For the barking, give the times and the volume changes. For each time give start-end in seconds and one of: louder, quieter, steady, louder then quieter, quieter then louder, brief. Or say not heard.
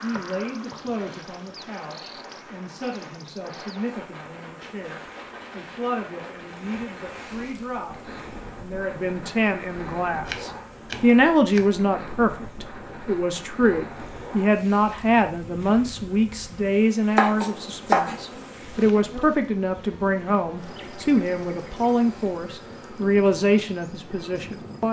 not heard.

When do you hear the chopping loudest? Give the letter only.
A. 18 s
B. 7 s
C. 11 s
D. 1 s
A.